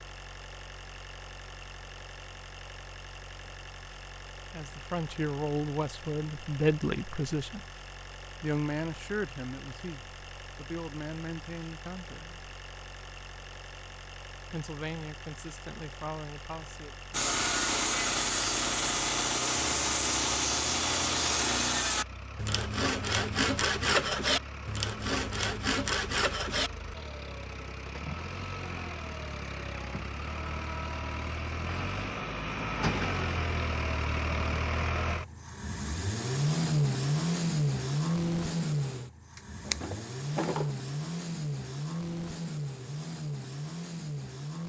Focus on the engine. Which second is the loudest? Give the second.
37 s.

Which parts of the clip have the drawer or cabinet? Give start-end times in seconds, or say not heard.
39.4-40.8.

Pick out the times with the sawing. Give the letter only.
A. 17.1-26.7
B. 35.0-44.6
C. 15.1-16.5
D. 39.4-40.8
A.